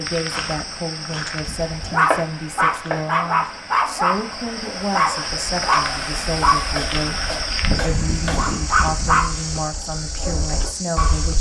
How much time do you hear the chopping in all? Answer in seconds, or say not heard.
3 s.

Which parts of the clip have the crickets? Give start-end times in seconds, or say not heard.
0.0-11.3.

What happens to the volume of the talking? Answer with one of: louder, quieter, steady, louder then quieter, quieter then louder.
steady.